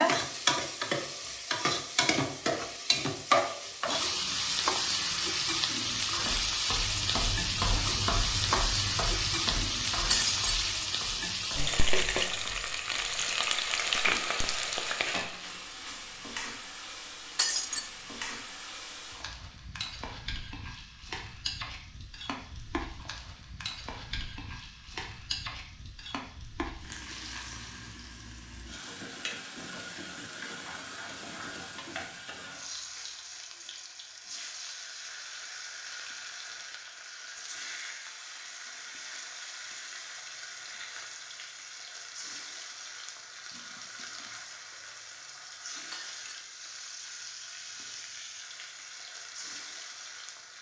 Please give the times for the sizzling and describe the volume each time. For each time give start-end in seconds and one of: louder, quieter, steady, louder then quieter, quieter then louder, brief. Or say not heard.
0.0-50.5 quieter.